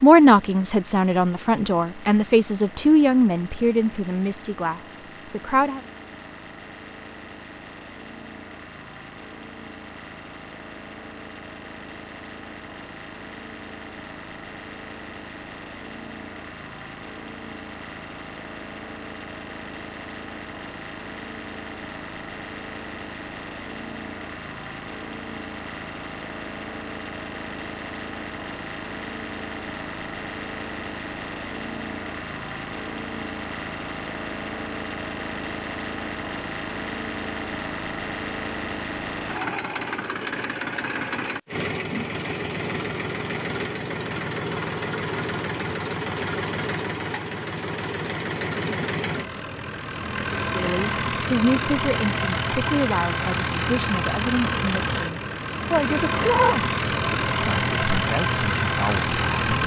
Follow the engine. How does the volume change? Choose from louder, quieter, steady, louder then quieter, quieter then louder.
louder.